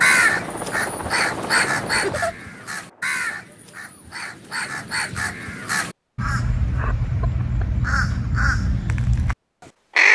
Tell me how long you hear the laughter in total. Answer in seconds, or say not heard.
2 s.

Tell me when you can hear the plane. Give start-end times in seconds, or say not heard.
0.0-3.2.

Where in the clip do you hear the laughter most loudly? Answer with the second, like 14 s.
2 s.